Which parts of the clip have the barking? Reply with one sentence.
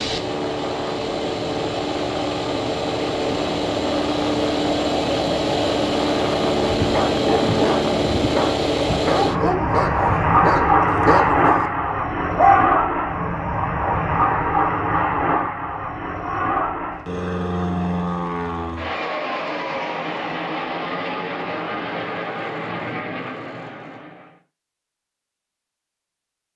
You can hear the barking from 6.6 to 12.8 s.